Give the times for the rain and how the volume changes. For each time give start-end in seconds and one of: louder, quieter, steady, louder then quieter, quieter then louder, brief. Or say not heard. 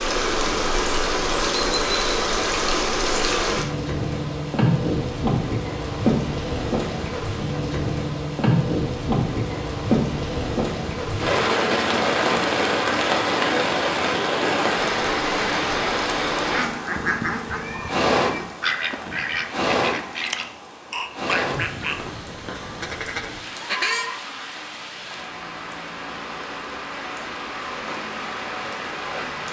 0.0-29.4 quieter.